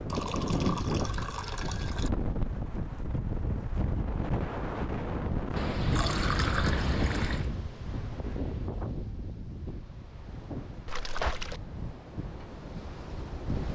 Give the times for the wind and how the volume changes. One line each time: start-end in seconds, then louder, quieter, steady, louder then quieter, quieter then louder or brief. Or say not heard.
0.0-13.6 quieter.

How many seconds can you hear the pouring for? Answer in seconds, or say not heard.
5 s.